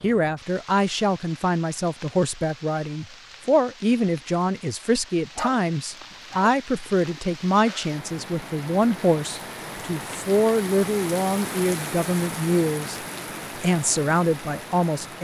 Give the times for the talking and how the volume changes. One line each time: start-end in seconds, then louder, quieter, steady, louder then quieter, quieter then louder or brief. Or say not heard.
0.0-13.0 steady
13.6-15.1 brief.